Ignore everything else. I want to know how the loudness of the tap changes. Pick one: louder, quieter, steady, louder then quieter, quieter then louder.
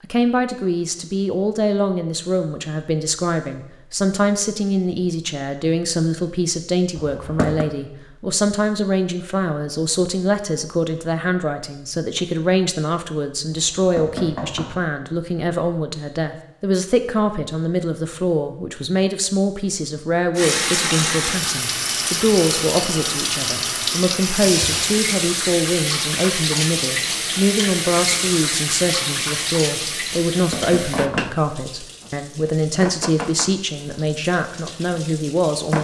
quieter.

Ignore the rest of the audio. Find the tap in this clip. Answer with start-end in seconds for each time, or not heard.
20.4-35.8.